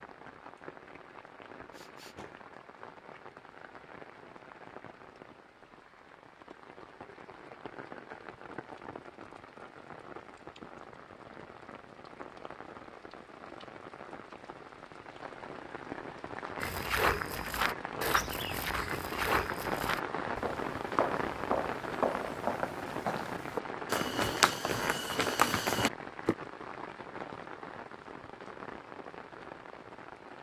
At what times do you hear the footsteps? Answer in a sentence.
You can hear the footsteps from 16.6 to 26.4 s.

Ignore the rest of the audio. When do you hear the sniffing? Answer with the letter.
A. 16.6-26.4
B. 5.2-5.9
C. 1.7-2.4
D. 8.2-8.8
C.